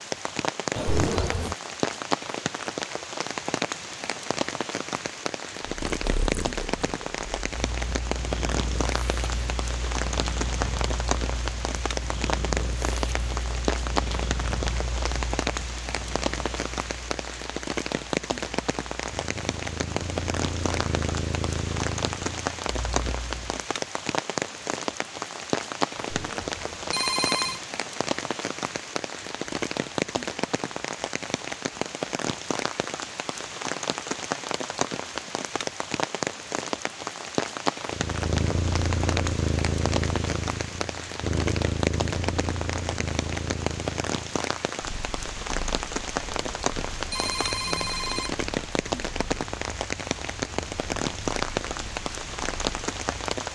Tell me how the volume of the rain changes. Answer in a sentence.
The loudness of the rain stays about the same.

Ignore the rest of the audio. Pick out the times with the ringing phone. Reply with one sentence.
The ringing phone can be heard from 0.8 to 1.6 s, from 25.9 to 27.6 s and from 46.3 to 48.5 s.